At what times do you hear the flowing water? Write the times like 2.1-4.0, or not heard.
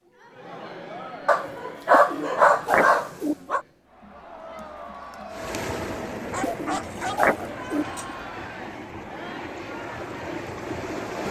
5.3-11.2.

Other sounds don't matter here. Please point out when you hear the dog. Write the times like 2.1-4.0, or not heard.
1.2-3.6, 6.3-8.1.